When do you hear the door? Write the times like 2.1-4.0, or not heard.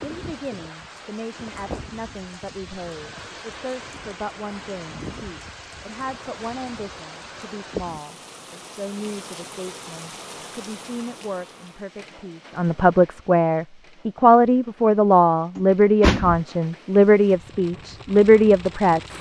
15.6-16.4.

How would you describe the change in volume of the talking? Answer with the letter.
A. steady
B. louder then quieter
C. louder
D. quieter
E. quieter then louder
C.